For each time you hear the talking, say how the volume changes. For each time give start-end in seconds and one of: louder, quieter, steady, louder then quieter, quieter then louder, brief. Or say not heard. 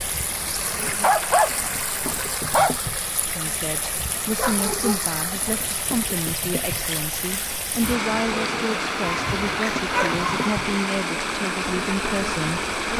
3.2-12.7 steady.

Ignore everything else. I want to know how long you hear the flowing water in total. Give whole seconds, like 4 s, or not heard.
13 s.